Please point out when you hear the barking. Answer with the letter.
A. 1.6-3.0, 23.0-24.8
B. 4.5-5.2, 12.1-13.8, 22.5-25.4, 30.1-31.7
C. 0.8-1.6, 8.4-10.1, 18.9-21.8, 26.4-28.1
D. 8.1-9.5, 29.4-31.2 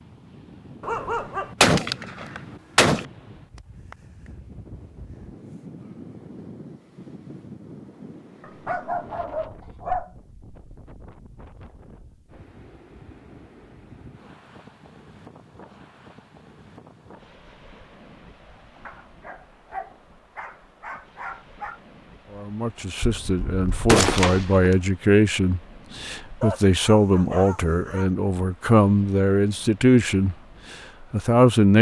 C.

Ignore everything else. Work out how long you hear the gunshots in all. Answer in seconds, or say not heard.
3 s.